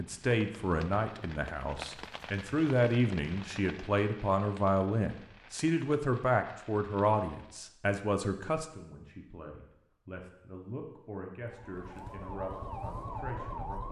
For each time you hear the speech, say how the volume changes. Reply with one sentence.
You can hear the speech from 0.0 to 13.8 s, getting quieter.